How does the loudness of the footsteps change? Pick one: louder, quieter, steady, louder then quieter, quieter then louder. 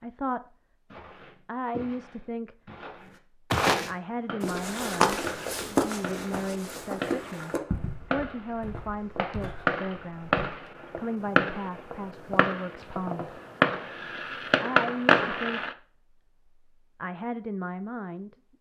louder then quieter.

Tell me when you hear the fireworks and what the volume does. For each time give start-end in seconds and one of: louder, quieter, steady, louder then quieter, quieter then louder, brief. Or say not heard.
4.0-15.8 louder.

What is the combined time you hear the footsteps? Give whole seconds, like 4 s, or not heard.
10 s.